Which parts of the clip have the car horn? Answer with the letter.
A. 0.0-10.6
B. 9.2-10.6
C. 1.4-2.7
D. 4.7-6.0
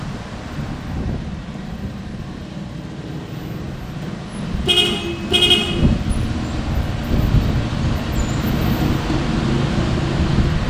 D.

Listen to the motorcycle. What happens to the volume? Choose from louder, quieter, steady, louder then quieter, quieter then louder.
louder.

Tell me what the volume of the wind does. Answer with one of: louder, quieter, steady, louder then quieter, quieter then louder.
quieter then louder.